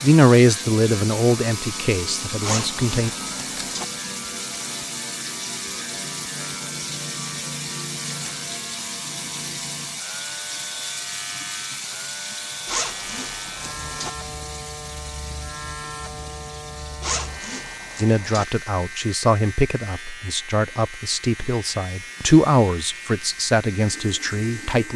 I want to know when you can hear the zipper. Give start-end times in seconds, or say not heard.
2.4-3.9, 12.7-14.1, 17.0-18.4.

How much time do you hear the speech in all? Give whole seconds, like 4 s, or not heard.
10 s.